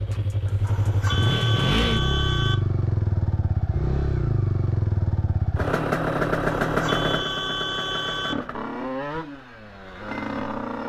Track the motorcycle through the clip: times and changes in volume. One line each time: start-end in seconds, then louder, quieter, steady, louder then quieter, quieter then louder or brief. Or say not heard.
0.0-10.8 quieter.